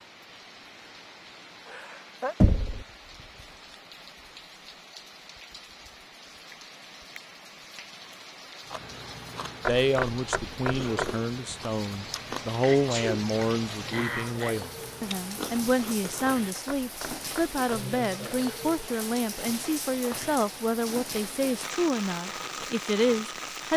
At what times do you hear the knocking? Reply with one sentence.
The knocking can be heard from 2.4 to 2.9 s, from 9.7 to 11.2 s and from 16.6 to 17.6 s.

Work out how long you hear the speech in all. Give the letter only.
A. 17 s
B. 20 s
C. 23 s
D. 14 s
D.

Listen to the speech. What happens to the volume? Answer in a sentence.
The volume of the speech stays about the same.